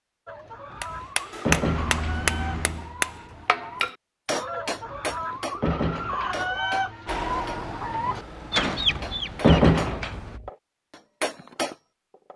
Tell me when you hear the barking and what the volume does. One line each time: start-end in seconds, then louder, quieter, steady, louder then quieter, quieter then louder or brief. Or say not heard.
not heard.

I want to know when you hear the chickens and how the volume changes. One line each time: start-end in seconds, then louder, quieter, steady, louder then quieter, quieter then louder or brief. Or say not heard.
0.2-9.7 louder.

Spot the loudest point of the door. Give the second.
10 s.